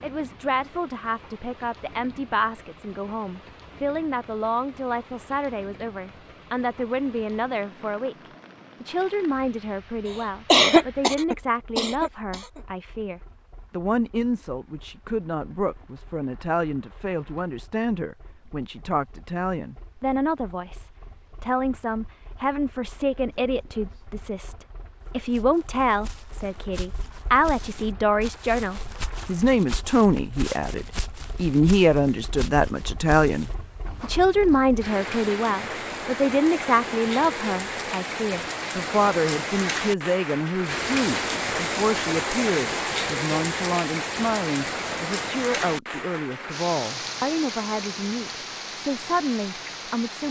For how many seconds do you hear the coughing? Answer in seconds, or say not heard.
2 s.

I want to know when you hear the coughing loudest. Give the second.
11 s.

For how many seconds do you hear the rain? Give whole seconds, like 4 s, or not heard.
50 s.